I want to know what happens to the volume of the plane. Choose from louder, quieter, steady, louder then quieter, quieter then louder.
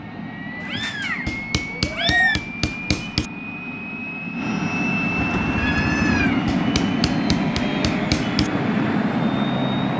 louder.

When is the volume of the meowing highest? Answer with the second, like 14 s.
2 s.